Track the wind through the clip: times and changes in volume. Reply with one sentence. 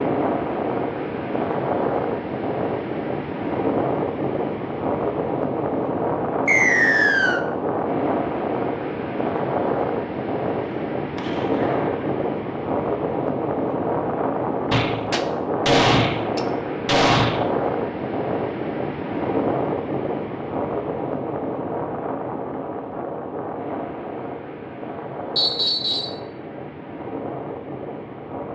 The wind can be heard from 0.0 to 28.5 s, getting quieter.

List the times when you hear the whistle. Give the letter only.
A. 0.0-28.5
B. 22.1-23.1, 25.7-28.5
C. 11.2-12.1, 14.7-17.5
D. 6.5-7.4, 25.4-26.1
D.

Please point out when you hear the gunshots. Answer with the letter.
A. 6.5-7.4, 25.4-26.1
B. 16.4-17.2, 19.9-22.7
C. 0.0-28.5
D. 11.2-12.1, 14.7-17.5
D.